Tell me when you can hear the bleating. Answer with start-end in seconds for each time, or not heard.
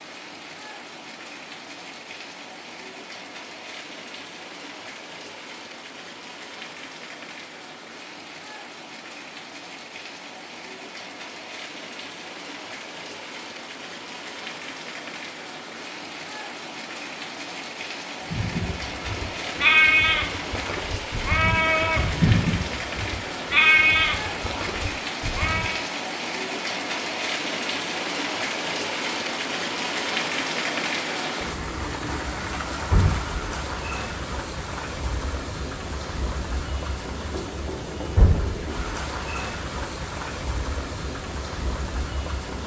18.3-25.9.